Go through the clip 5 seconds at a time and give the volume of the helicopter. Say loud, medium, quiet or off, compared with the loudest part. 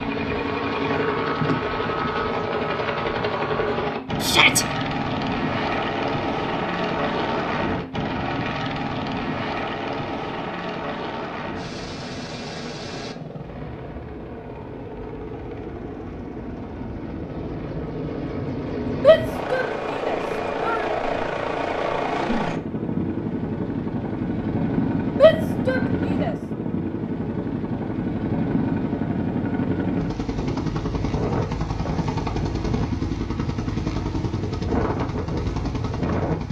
loud, loud, medium, medium, loud, loud, loud, loud.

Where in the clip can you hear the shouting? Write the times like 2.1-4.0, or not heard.
4.2-4.7, 19.0-20.9, 25.2-26.4.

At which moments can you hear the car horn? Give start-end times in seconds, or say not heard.
not heard.